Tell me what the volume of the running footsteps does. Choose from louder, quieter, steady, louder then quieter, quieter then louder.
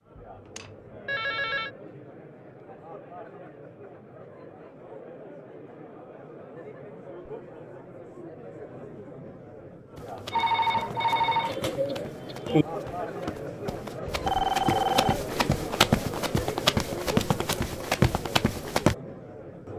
louder.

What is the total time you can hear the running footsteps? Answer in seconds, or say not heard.
9 s.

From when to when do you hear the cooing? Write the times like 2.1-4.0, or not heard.
11.4-12.7.